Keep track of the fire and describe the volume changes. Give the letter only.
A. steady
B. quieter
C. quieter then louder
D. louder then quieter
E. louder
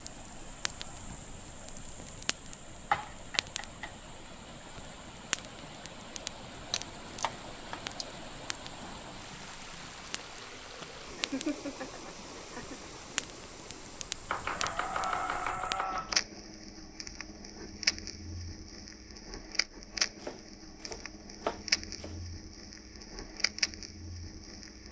E.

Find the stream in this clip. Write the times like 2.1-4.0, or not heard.
0.0-15.6.